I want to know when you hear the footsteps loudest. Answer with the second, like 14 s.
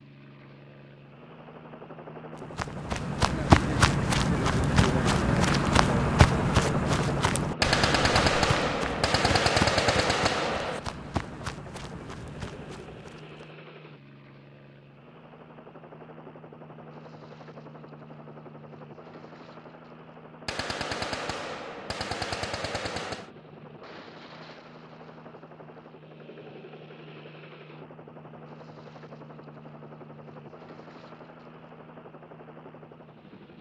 4 s.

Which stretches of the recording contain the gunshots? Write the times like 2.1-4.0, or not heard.
7.6-10.8, 20.4-23.3.